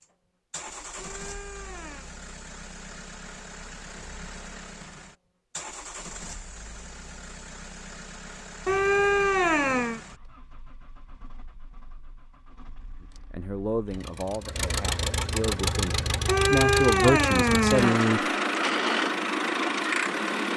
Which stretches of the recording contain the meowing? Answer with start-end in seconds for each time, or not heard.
0.9-2.1, 8.7-10.0, 16.2-18.0.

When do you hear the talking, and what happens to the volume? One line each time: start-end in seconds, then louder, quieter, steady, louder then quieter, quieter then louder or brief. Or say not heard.
13.2-18.2 quieter then louder.